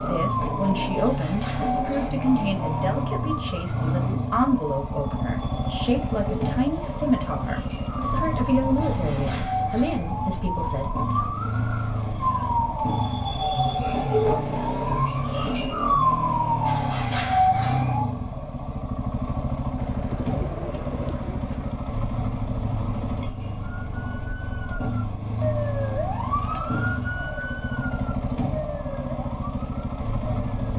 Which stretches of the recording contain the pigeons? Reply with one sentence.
The pigeons can be heard from 19.8 to 21.8 s.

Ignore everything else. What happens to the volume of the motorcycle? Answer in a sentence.
The volume of the motorcycle stays about the same.